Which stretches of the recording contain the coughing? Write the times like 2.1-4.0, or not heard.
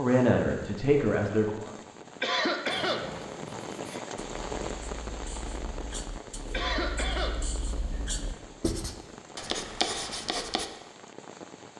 2.2-3.0, 6.5-7.3.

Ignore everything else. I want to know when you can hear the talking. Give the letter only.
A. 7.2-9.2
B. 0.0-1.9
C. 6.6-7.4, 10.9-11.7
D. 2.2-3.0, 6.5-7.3
B.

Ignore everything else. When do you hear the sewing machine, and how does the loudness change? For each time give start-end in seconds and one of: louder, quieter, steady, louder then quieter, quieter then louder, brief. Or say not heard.
not heard.